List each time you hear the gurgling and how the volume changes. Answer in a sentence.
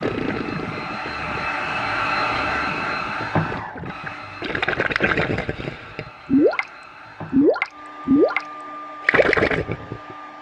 You can hear the gurgling from 0.0 to 10.3 s, getting louder.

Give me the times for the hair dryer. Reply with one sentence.
The hair dryer can be heard from 0.0 to 10.3 s.